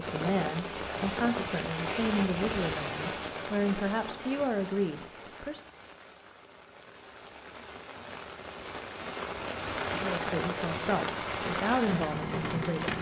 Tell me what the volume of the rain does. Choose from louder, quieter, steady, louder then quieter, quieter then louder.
quieter then louder.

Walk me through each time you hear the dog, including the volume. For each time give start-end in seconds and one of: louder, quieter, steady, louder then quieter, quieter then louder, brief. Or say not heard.
not heard.